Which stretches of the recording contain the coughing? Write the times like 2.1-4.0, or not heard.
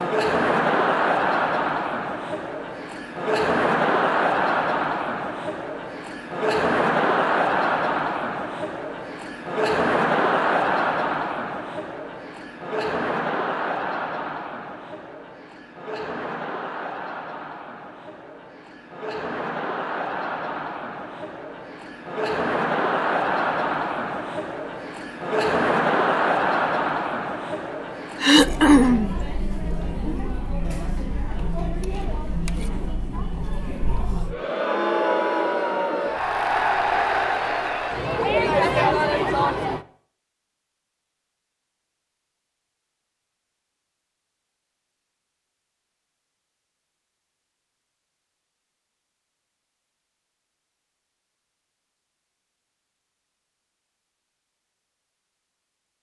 28.2-29.1.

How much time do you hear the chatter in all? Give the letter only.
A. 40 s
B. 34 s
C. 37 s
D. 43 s
A.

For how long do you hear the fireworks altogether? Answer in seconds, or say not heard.
not heard.